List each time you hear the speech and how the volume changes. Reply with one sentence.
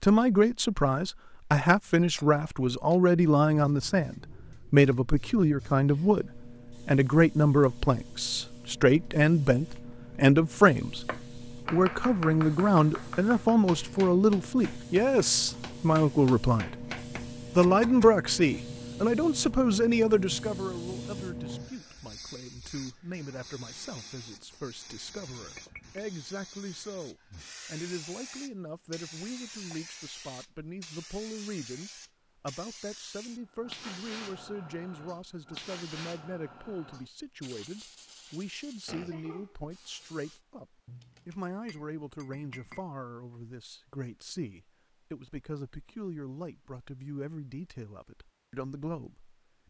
The speech can be heard from 0.0 to 16.9 s, at a steady volume; and from 17.6 to 49.6 s, getting quieter.